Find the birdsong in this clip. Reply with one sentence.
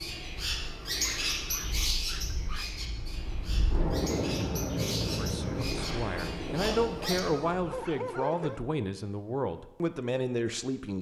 The birdsong can be heard from 0.0 to 7.2 s.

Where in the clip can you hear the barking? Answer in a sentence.
You can hear the barking from 1.0 to 2.8 s and from 6.5 to 8.7 s.